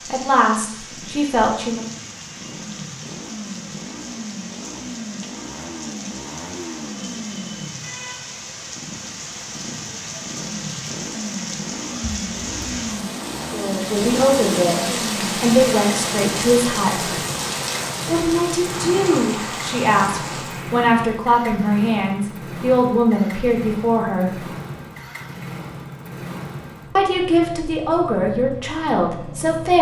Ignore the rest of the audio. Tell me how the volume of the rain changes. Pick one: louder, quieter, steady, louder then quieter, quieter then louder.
louder.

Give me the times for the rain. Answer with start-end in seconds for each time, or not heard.
0.0-20.9.